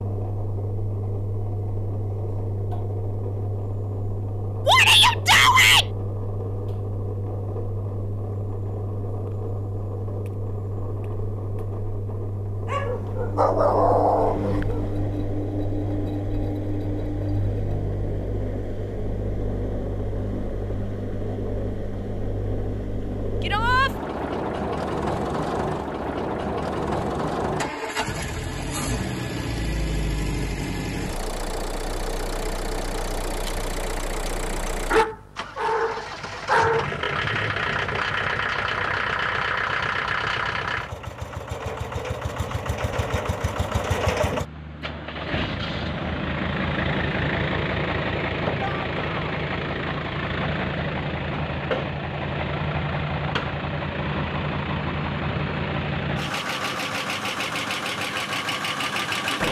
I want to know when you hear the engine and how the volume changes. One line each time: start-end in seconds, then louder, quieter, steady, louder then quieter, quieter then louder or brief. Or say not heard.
0.0-59.4 louder.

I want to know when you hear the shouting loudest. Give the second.
5 s.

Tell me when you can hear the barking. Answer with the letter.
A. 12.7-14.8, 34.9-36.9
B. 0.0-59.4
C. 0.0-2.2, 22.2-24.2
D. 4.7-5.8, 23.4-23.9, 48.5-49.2
A.